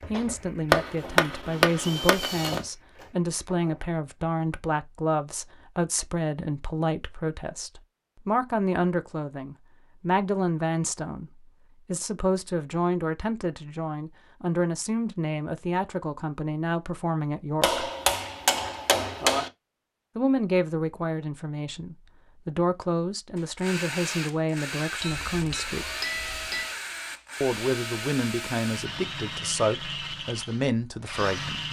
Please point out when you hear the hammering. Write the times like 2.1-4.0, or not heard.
0.7-2.6, 17.6-19.5, 25.0-26.7.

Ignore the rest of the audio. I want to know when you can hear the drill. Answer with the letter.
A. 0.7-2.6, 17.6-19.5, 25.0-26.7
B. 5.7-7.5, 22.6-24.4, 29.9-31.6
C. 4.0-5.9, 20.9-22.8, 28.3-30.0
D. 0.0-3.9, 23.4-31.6
D.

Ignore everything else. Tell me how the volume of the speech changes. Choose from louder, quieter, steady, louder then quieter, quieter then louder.
steady.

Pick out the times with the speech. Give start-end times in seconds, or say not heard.
0.1-17.9, 20.1-25.9, 27.4-31.6.